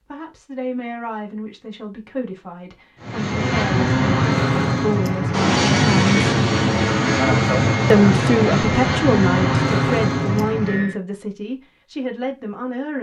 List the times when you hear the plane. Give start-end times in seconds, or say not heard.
3.0-10.9.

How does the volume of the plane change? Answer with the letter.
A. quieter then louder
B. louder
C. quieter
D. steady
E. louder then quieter
D.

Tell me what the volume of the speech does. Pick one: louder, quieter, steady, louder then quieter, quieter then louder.
louder then quieter.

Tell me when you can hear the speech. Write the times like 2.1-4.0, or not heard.
0.1-6.3, 7.9-12.9.